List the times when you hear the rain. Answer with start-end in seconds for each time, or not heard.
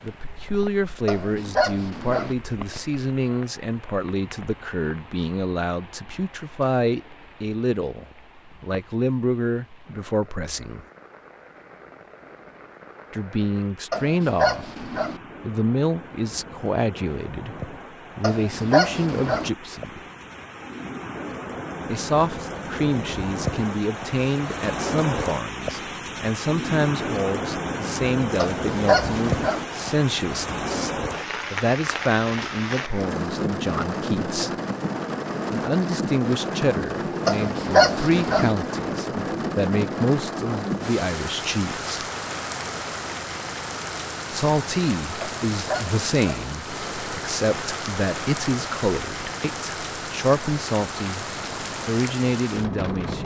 0.0-53.2.